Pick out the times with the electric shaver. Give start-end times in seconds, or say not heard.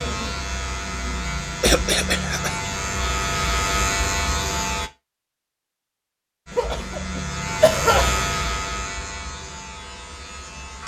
0.0-4.9, 6.5-10.8.